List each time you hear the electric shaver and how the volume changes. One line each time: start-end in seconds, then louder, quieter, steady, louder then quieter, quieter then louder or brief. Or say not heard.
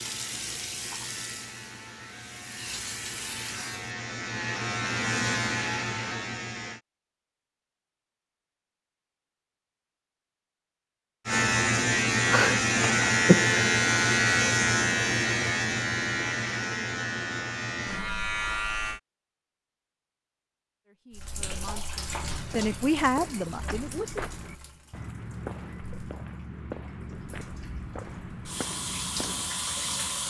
0.0-6.8 louder
11.2-19.0 quieter.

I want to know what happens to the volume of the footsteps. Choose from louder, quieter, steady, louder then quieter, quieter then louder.
steady.